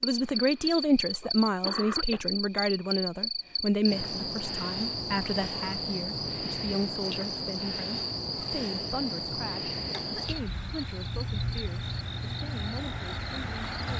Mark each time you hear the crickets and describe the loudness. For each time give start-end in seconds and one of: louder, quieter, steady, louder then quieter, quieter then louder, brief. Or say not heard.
0.0-13.9 steady.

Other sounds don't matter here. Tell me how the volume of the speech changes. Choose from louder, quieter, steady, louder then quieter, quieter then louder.
quieter.